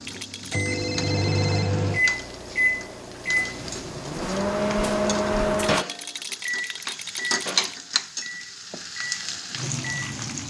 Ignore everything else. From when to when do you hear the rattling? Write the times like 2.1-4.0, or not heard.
0.0-0.7, 5.6-7.7.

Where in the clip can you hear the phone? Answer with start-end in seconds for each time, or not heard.
0.7-1.8.